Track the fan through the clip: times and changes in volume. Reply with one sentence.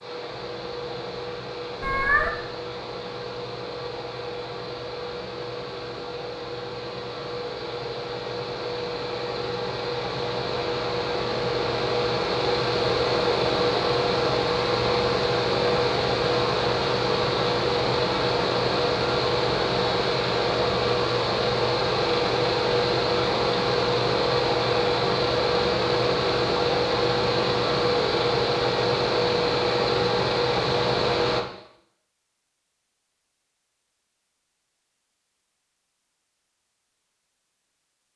The fan can be heard from 0.0 to 31.4 s, getting louder.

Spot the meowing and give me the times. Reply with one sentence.
You can hear the meowing from 1.8 to 2.3 s.